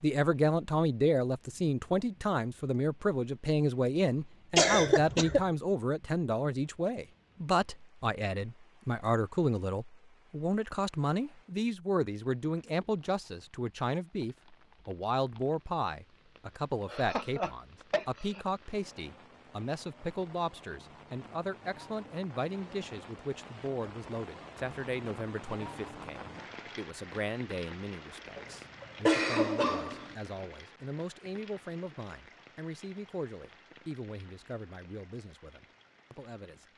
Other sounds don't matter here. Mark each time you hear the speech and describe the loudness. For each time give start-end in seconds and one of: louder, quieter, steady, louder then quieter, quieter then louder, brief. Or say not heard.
0.0-36.7 quieter.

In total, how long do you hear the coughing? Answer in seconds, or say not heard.
4 s.